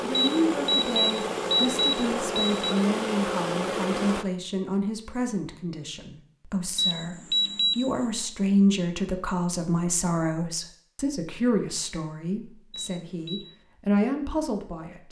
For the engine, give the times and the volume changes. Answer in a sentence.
You can hear the engine from 0.0 to 4.2 s, at a steady volume.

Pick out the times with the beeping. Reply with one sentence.
The beeping can be heard from 0.1 to 2.8 s, from 6.8 to 8.1 s and from 12.7 to 13.4 s.